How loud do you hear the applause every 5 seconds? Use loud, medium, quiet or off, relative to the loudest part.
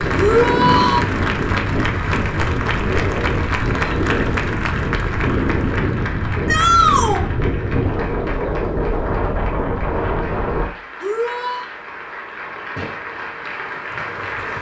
loud, medium, medium.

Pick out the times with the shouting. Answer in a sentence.
You can hear the shouting from 0.1 to 1.1 s, from 6.5 to 7.2 s and from 11.0 to 11.7 s.